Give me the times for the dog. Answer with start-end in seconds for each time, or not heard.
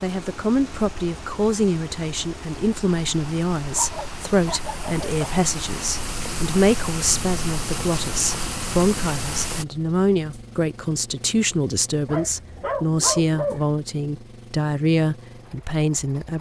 3.7-5.2, 12.1-13.7.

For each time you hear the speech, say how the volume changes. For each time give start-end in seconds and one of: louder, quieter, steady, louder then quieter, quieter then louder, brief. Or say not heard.
0.0-16.3 steady.